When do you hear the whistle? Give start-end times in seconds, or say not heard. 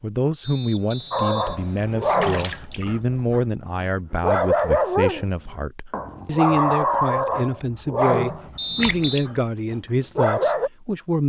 0.4-2.3, 8.6-9.2.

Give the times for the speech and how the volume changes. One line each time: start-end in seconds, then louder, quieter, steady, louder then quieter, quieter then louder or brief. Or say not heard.
0.0-11.2 steady.